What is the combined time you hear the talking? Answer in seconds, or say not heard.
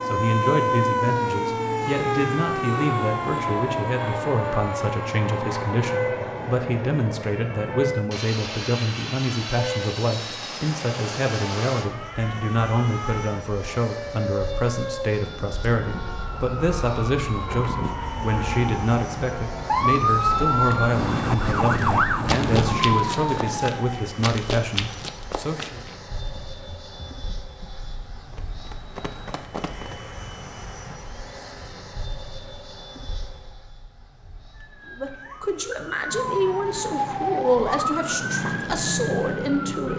31 s.